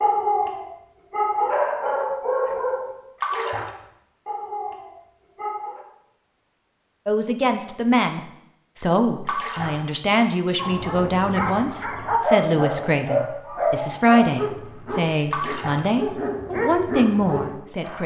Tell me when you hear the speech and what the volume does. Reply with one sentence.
The speech can be heard from 7.0 to 18.0 s, at a steady volume.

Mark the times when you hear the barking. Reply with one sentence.
You can hear the barking from 0.0 to 5.8 s and from 10.6 to 18.0 s.